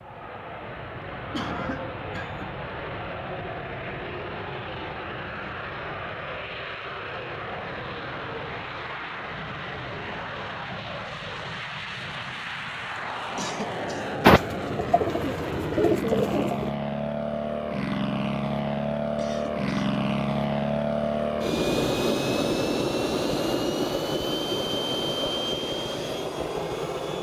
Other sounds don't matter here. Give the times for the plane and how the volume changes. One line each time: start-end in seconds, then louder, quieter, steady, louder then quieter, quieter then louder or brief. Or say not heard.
0.0-27.1 louder.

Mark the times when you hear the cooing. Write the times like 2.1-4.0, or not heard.
14.2-16.7.